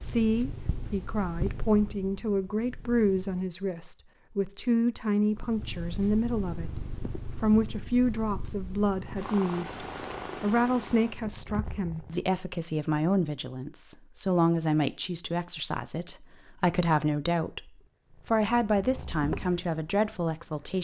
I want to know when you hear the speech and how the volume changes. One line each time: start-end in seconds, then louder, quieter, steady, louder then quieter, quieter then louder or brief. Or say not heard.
0.0-20.7 steady.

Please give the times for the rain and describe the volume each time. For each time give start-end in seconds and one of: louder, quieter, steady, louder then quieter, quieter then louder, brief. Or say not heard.
not heard.